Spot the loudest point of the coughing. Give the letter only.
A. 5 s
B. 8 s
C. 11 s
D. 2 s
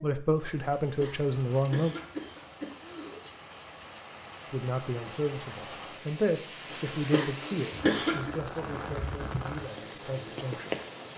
B.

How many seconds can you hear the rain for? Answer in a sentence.
You can hear the rain for 11 seconds altogether.